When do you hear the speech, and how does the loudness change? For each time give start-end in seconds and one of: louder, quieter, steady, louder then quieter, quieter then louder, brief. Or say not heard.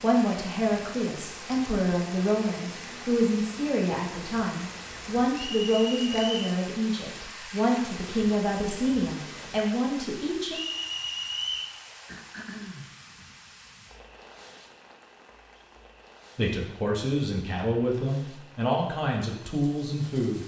0.0-10.6 steady
16.4-20.4 steady.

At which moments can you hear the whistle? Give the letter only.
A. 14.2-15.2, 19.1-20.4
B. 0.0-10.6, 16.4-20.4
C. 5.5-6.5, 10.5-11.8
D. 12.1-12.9
C.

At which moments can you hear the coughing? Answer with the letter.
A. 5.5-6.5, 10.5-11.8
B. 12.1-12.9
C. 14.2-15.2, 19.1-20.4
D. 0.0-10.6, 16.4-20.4
B.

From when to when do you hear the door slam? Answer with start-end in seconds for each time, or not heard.
not heard.